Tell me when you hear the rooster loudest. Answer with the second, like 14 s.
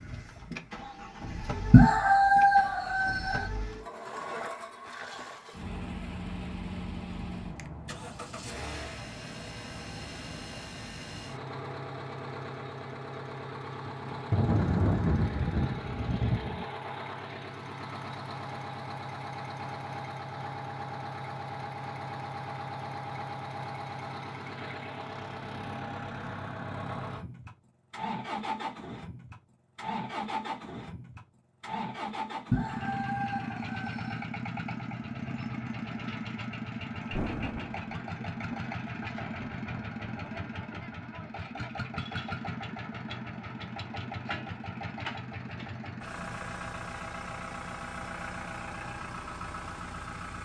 2 s.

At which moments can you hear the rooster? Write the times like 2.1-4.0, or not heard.
1.7-3.5, 32.5-34.2.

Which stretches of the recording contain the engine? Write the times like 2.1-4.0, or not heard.
0.0-50.3.